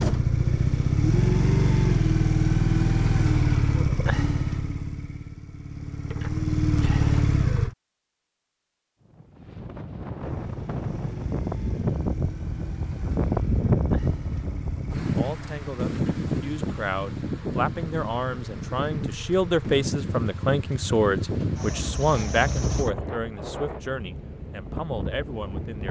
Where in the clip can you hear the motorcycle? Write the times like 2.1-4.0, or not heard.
0.0-7.8, 10.2-22.9.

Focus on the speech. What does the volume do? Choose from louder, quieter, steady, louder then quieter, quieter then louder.
louder then quieter.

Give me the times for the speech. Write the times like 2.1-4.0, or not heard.
15.1-25.8.